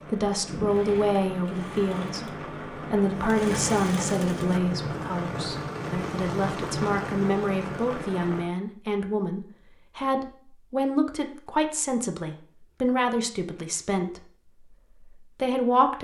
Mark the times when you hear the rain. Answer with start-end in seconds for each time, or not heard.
0.0-8.5.